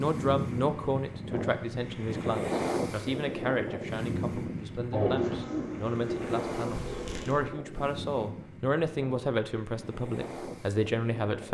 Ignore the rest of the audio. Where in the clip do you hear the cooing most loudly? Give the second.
5 s.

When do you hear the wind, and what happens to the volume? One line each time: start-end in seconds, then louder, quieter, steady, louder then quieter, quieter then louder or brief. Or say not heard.
0.0-11.5 quieter.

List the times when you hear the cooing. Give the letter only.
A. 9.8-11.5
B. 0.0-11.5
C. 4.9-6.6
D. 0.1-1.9
C.